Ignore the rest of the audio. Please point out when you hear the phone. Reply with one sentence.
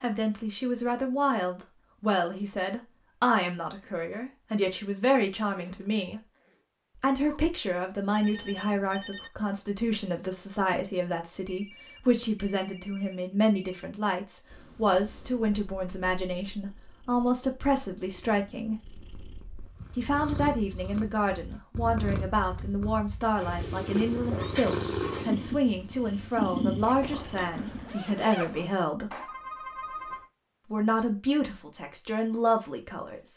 The phone can be heard from 8.1 to 9.3 s, from 11.4 to 13.9 s and from 29.1 to 30.3 s.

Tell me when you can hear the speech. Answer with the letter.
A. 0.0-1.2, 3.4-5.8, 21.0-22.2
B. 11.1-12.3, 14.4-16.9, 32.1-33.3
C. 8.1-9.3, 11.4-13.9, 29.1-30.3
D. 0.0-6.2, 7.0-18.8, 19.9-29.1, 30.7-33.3
D.